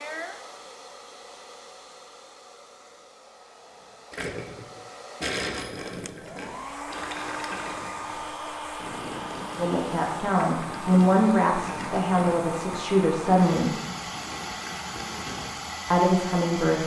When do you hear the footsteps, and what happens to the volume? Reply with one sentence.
The footsteps can't be heard in this clip.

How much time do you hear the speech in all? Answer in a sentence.
The speech can be heard for 5 seconds in total.